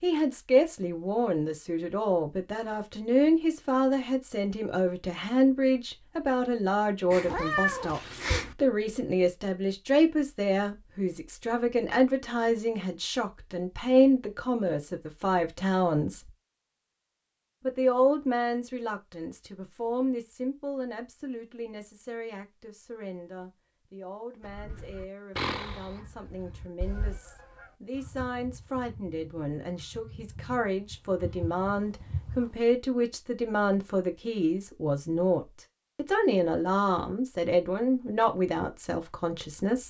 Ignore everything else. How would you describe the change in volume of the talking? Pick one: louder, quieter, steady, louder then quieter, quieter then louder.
quieter then louder.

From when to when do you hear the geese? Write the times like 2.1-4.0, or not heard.
24.4-32.6.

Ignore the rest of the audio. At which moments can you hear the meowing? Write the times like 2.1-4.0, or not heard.
7.1-8.6.